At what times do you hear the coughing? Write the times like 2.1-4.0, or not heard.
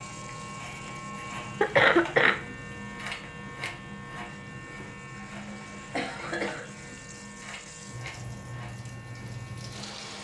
1.6-2.4, 5.3-6.8.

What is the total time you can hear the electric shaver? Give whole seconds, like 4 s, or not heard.
10 s.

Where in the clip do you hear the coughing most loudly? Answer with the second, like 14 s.
2 s.